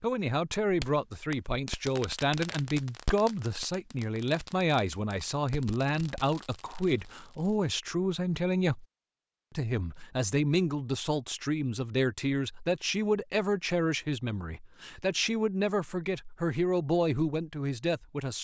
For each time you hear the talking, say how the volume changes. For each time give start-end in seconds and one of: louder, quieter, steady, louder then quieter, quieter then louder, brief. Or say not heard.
0.0-8.8 steady
9.5-18.3 steady.